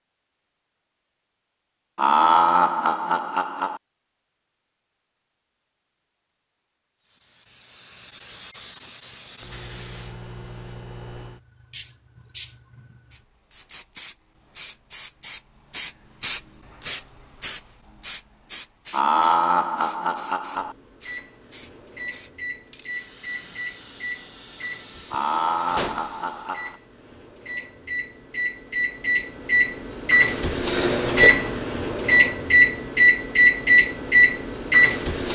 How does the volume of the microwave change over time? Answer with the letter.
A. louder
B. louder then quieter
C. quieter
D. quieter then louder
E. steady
A.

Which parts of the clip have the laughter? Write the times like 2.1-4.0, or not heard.
1.9-3.8, 18.9-20.8, 25.1-26.8.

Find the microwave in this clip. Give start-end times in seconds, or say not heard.
20.6-35.2.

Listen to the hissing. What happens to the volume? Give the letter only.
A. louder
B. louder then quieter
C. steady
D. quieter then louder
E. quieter
B.